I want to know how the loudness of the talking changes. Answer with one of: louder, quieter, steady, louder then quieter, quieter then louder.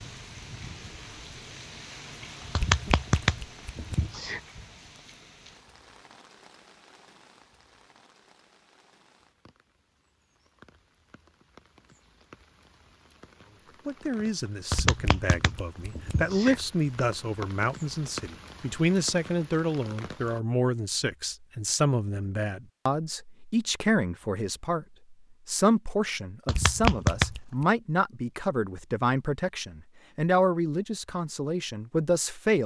steady.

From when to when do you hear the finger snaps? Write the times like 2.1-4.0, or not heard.
2.5-4.4, 14.7-16.6, 26.4-27.6.